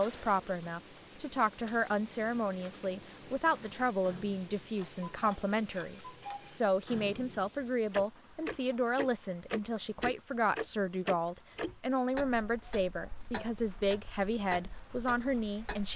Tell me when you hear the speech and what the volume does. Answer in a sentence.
The speech can be heard from 0.0 to 15.9 s, at a steady volume.